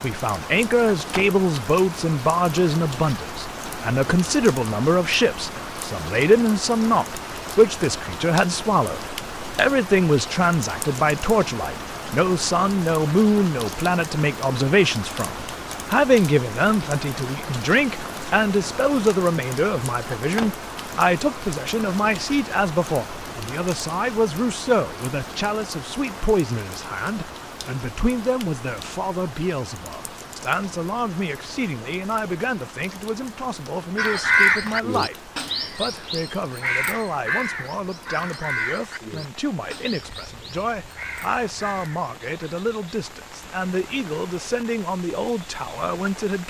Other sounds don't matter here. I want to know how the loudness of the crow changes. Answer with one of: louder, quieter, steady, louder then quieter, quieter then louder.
quieter.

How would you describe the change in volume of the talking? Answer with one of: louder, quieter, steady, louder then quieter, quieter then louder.
quieter.